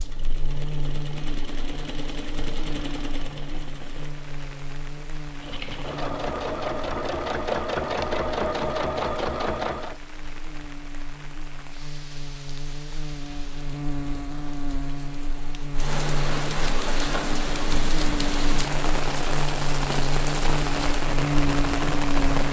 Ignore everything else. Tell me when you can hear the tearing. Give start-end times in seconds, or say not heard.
not heard.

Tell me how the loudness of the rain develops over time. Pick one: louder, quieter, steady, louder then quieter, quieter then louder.
louder.